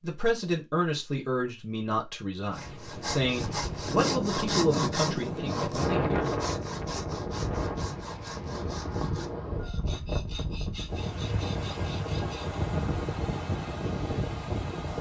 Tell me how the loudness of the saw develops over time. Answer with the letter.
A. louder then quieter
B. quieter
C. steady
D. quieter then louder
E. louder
B.